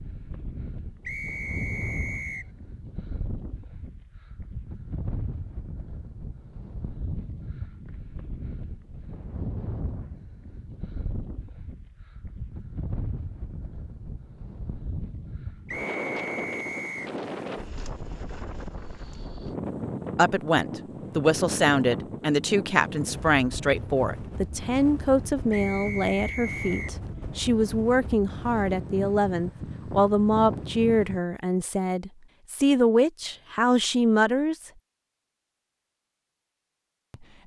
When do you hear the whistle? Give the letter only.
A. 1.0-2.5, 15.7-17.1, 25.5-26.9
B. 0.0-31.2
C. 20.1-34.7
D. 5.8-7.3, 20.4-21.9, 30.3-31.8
A.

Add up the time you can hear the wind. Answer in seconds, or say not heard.
31 s.